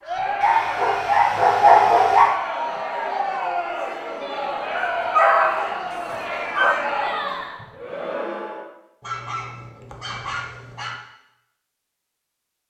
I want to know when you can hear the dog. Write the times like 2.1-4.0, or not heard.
0.4-2.4, 4.7-6.8, 9.0-10.9.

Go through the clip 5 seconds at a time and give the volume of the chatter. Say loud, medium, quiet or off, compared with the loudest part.
loud, loud, off.